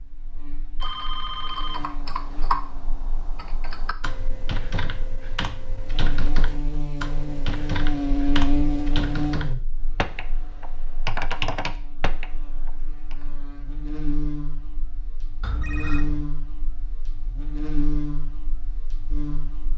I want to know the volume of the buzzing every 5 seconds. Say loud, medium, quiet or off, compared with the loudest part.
quiet, loud, medium, medium.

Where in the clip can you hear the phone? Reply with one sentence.
You can hear the phone from 0.8 to 1.9 s and from 15.4 to 16.2 s.